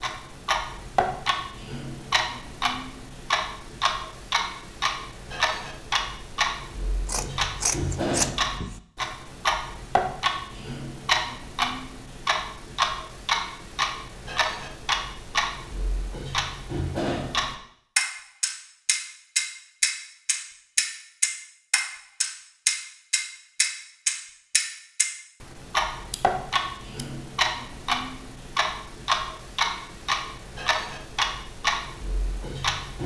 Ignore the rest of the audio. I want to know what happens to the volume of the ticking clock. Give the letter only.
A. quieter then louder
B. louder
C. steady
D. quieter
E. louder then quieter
C.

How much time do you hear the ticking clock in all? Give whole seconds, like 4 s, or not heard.
33 s.